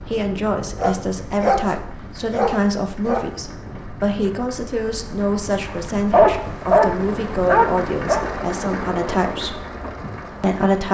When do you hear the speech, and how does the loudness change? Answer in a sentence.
You can hear the speech from 0.1 to 9.6 s, at a steady volume; and briefly from 10.4 to 10.8 s.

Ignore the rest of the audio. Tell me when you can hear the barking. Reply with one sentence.
The barking can be heard from 0.8 to 1.6 s, from 2.3 to 3.2 s and from 5.7 to 8.2 s.